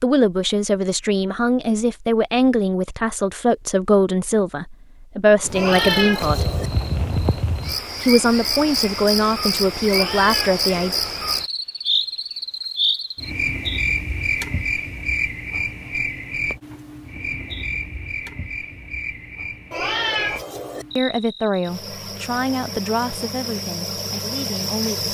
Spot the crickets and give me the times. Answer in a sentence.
The crickets can be heard from 5.4 to 25.0 s.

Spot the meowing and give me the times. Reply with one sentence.
You can hear the meowing from 5.5 to 6.7 s, from 9.8 to 11.0 s and from 19.7 to 20.9 s.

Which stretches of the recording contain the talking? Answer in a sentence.
The talking can be heard from 0.0 to 6.5 s, from 8.0 to 10.9 s and from 20.9 to 25.0 s.